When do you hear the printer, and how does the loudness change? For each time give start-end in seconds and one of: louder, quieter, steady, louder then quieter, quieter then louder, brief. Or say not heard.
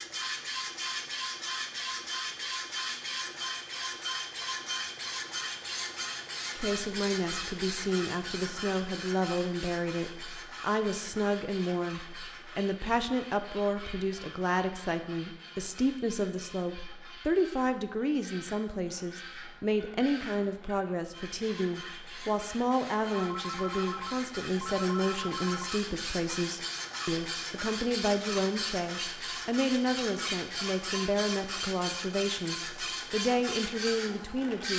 0.0-34.7 quieter then louder.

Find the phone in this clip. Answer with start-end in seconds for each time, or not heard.
23.1-25.7.